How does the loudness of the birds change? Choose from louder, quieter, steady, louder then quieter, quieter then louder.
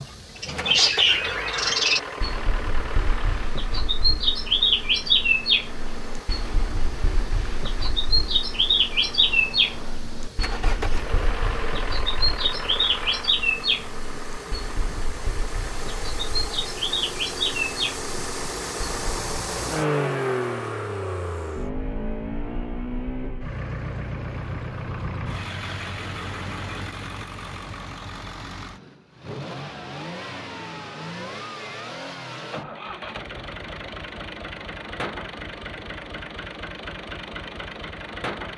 quieter.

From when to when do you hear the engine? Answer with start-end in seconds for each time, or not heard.
0.0-38.5.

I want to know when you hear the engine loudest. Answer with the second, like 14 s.
20 s.